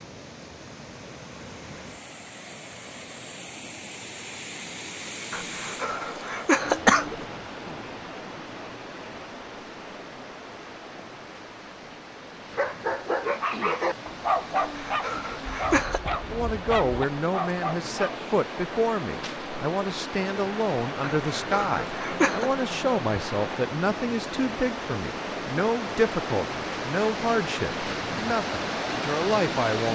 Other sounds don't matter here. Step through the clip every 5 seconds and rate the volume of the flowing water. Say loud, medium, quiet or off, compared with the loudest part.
medium, medium, medium, medium, loud, loud.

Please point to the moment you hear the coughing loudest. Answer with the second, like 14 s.
7 s.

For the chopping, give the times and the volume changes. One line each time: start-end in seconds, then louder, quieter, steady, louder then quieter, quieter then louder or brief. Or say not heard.
not heard.